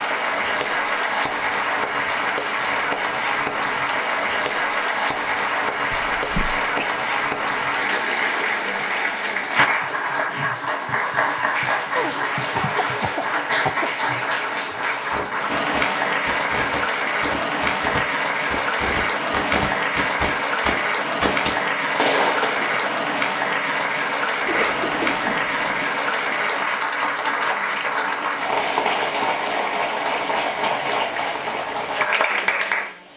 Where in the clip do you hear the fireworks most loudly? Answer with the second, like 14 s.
22 s.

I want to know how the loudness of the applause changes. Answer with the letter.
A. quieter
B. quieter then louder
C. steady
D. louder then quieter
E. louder
C.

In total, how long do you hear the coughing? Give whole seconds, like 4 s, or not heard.
4 s.